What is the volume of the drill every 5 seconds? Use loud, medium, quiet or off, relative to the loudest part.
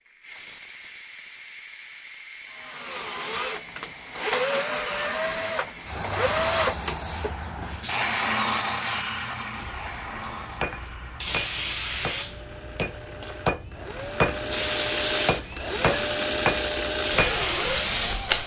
loud, loud, medium, loud.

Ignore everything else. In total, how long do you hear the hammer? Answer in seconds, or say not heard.
7 s.